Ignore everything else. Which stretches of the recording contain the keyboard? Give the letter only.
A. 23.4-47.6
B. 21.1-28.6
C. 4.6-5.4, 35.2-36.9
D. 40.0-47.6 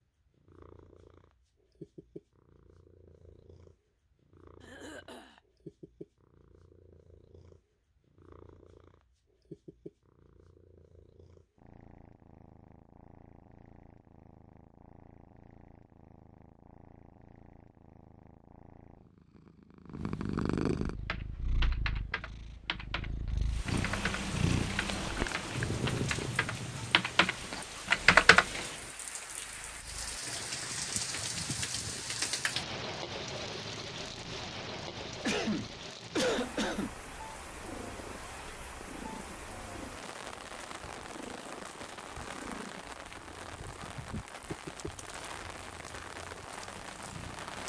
B.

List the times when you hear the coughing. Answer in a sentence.
You can hear the coughing from 4.6 to 5.4 s and from 35.2 to 36.9 s.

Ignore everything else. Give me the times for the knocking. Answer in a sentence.
The knocking can't be heard in this clip.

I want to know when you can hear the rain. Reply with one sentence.
The rain can be heard from 23.4 to 47.6 s.